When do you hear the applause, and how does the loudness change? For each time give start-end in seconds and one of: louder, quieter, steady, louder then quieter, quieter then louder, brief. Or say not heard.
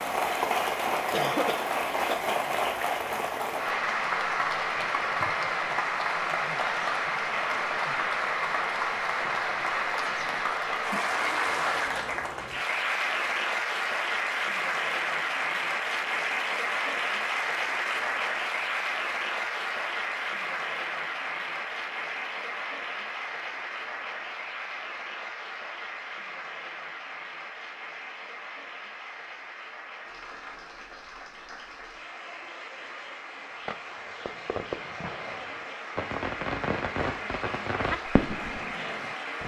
0.0-39.4 quieter.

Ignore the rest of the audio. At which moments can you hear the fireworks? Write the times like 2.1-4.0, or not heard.
33.5-39.4.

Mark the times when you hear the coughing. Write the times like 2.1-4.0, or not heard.
1.1-2.2.